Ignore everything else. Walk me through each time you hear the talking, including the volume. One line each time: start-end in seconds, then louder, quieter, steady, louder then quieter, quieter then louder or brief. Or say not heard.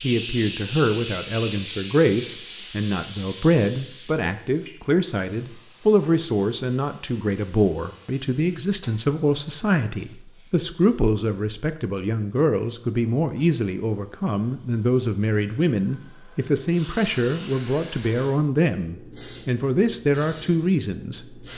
0.0-21.5 steady.